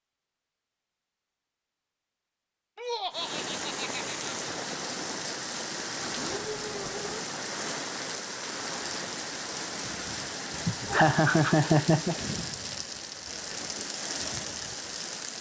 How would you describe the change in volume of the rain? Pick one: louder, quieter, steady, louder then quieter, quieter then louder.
steady.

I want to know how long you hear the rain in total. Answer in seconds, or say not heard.
12 s.